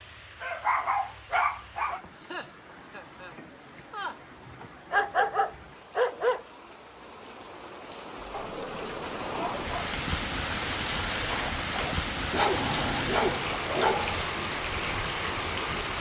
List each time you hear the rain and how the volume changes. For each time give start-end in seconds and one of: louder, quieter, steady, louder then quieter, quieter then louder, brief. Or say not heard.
0.0-15.9 louder.